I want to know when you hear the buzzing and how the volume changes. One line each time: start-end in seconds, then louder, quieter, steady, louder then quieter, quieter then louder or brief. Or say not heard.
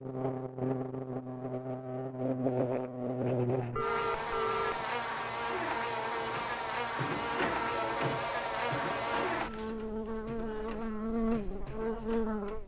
0.0-12.6 steady.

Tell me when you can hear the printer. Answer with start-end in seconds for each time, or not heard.
6.1-12.6.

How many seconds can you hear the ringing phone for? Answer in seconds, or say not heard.
3 s.